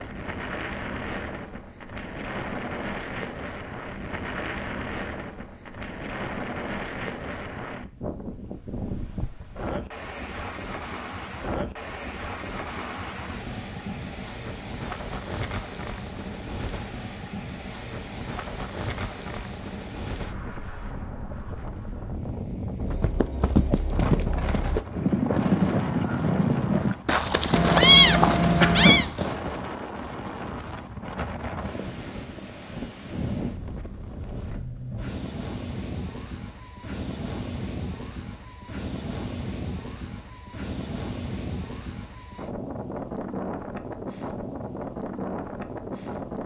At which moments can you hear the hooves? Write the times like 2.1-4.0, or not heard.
22.8-29.4.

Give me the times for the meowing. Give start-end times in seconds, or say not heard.
27.5-29.1.